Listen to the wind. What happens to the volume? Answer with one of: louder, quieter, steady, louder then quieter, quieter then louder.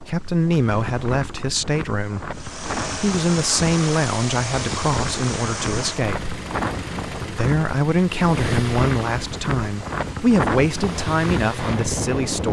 louder.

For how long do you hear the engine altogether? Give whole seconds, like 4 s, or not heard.
10 s.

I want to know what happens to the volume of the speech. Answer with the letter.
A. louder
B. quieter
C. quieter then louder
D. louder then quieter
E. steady
E.